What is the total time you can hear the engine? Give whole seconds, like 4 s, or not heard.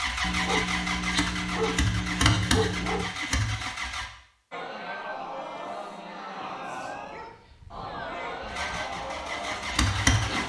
6 s.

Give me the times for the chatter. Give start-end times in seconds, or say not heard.
4.5-10.4.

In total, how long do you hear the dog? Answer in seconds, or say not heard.
5 s.